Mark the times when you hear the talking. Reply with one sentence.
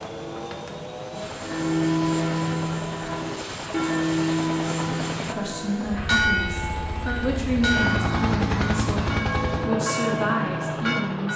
You can hear the talking from 5.3 to 11.3 s.